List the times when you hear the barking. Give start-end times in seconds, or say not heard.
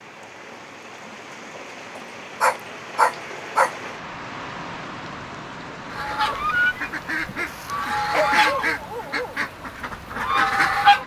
1.9-3.7, 7.5-9.3.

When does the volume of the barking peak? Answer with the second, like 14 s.
3 s.